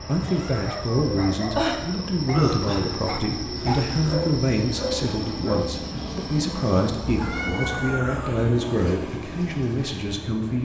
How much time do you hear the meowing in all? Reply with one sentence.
The meowing can be heard for 3 seconds in total.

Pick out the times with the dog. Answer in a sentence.
You can hear the dog from 0.6 to 5.7 s.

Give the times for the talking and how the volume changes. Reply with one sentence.
The talking can be heard from 0.0 to 10.5 s, at a steady volume.